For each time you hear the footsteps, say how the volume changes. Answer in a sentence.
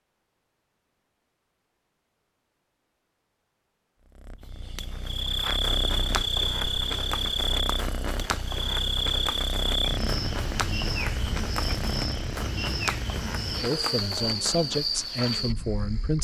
You can hear the footsteps from 4.9 to 15.0 s, at a steady volume.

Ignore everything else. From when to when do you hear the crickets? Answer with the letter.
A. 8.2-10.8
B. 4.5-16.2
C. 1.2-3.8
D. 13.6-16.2
B.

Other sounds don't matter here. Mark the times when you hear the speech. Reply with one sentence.
The speech can be heard from 13.6 to 16.2 s.